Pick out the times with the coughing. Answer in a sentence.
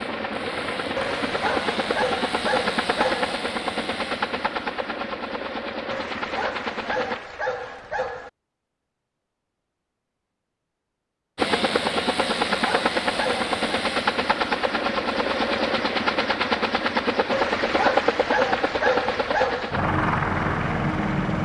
You can't hear the coughing here.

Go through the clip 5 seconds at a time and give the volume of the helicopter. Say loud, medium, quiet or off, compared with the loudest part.
loud, medium, loud, loud, loud.